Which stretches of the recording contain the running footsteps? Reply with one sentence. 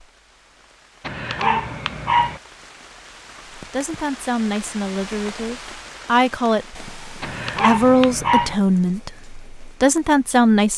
You can't hear the running footsteps here.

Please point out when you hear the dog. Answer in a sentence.
You can hear the dog from 1.0 to 2.4 s and from 7.2 to 8.6 s.